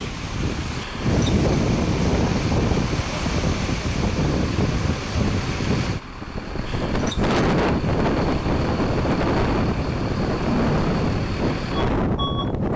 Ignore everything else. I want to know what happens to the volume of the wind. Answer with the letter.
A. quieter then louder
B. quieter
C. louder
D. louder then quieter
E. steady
E.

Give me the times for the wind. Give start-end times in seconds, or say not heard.
0.0-12.7.